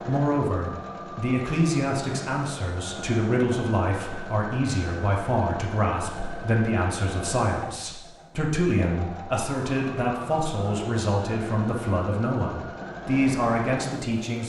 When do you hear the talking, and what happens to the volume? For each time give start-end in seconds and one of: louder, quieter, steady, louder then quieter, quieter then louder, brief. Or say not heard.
0.1-14.4 steady.